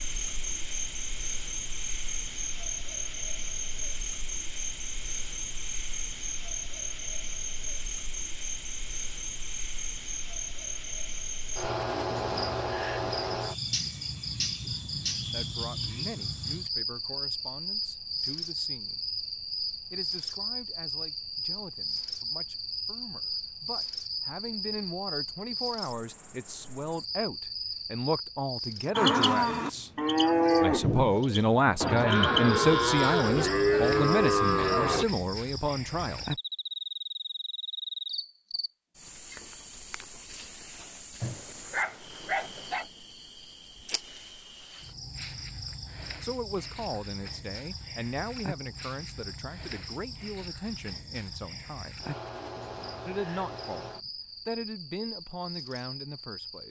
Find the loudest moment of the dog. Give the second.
42 s.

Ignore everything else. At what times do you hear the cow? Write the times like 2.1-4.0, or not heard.
28.9-35.0.